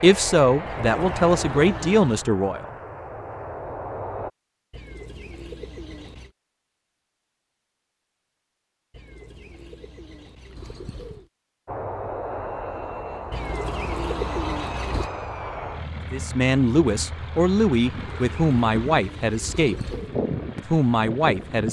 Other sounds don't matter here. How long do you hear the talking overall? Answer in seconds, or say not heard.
7 s.